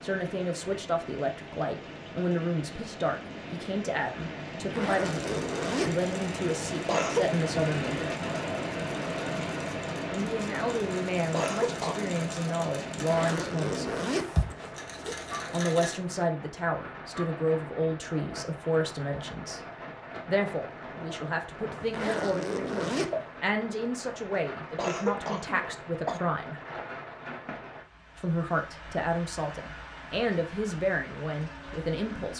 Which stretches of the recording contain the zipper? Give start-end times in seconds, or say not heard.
4.6-6.0, 12.9-15.3, 21.8-23.1.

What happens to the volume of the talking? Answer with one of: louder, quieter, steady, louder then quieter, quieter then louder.
steady.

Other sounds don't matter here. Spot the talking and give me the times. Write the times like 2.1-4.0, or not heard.
0.0-8.2, 10.1-14.0, 15.5-19.6, 20.2-26.6, 28.1-32.3.